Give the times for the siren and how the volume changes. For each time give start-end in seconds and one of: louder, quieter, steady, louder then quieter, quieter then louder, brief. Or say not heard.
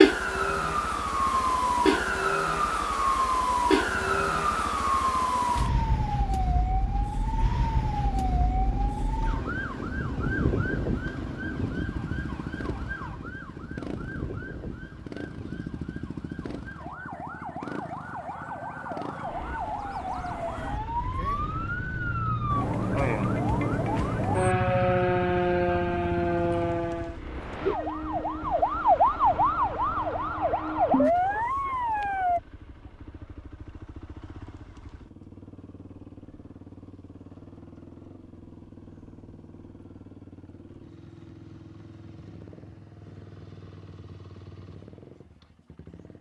0.0-32.4 quieter then louder.